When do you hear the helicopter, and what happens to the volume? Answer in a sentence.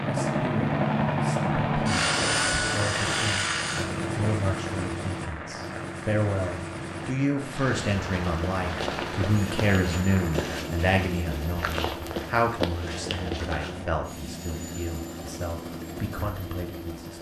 You can hear the helicopter from 0.0 to 17.1 s, getting quieter.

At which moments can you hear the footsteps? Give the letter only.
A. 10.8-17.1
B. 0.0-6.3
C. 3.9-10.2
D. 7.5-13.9
D.